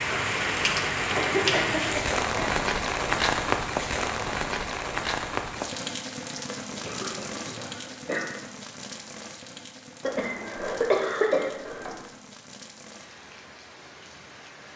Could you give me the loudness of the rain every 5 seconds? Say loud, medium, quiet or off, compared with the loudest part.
loud, medium, quiet.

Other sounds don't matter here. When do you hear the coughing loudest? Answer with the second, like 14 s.
11 s.